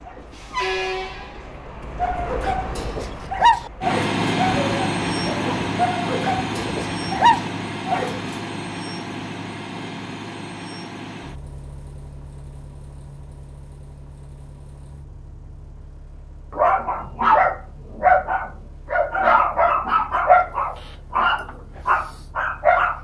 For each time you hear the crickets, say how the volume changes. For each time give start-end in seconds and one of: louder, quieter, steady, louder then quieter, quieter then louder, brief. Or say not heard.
not heard.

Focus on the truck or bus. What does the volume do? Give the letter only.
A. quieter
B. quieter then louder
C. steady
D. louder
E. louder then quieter
A.